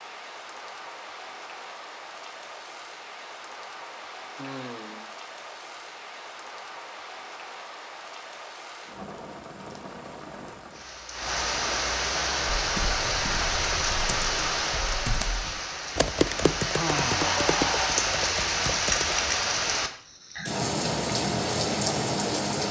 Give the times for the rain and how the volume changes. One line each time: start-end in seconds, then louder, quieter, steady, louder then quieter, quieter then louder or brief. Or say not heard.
0.0-22.6 louder.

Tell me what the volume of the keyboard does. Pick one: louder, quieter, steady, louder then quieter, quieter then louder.
louder then quieter.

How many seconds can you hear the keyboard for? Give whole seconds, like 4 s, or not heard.
7 s.